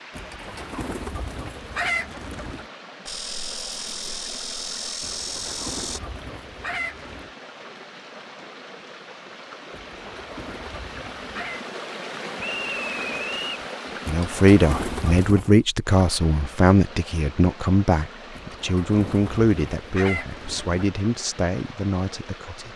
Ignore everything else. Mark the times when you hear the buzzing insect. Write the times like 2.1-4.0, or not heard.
3.0-6.0.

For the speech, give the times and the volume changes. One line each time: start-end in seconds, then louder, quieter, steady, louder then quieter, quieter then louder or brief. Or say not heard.
14.1-22.7 quieter.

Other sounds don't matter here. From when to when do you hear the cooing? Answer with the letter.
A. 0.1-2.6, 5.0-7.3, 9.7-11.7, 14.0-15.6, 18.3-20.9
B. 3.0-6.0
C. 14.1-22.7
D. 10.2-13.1
A.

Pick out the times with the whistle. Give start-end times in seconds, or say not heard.
12.3-13.7.